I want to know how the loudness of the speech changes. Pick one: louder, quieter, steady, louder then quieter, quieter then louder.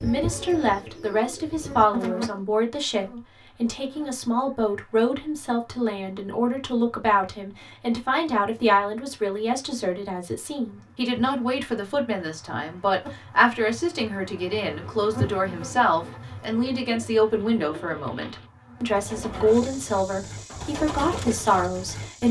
steady.